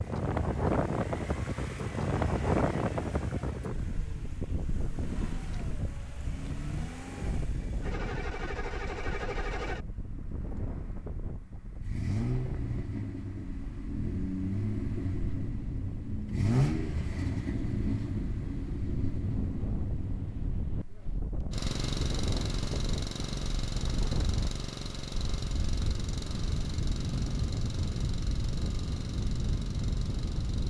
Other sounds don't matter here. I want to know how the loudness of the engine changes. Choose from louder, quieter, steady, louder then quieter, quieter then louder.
louder then quieter.